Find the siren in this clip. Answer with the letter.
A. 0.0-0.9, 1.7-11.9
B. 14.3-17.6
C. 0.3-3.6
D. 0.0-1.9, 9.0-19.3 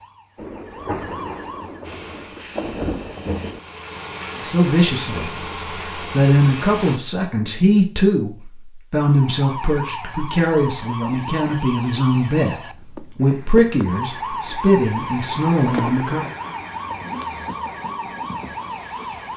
D.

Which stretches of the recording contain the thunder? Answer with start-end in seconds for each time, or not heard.
0.3-3.6.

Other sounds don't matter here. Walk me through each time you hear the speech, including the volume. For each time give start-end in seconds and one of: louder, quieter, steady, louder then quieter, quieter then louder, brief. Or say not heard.
4.4-5.3 brief
6.1-16.3 steady.